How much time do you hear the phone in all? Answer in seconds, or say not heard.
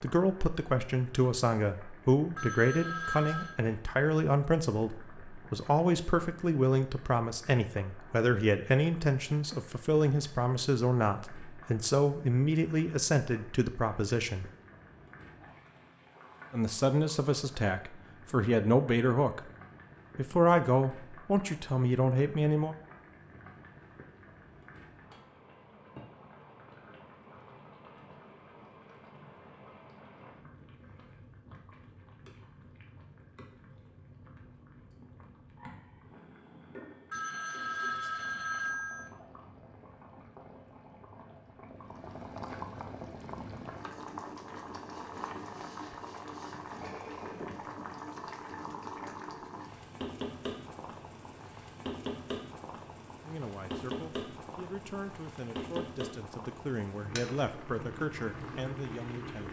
3 s.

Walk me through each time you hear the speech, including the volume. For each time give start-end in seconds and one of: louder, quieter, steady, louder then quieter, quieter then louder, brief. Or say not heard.
0.0-14.5 steady
16.5-19.4 brief
20.1-22.8 brief
53.2-59.4 louder.